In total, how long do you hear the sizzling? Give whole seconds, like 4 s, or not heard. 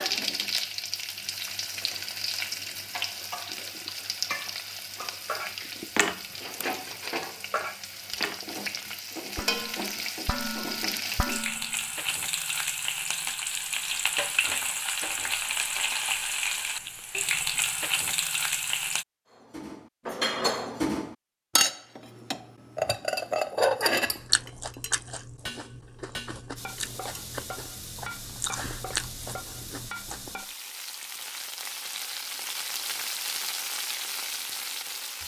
28 s.